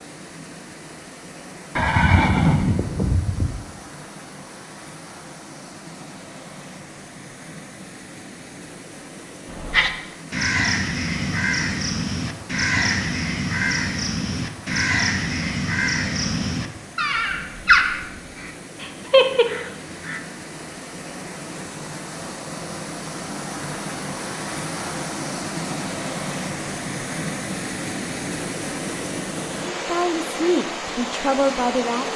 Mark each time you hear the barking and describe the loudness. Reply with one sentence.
You can't hear the barking here.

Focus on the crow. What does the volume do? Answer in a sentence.
The volume of the crow stays about the same.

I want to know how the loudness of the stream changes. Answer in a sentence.
The loudness of the stream goes up.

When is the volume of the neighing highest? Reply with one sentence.
The volume of the neighing peaks at 2 seconds.